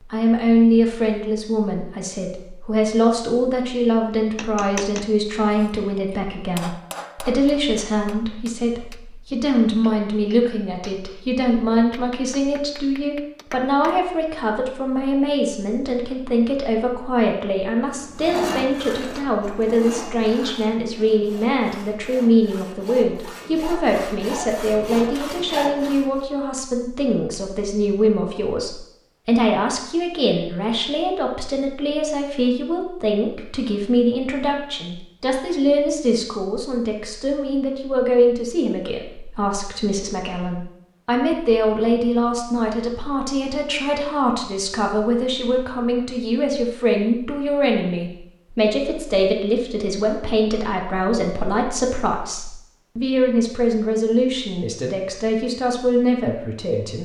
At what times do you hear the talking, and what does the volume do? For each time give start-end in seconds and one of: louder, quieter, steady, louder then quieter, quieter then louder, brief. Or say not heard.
0.0-57.0 steady.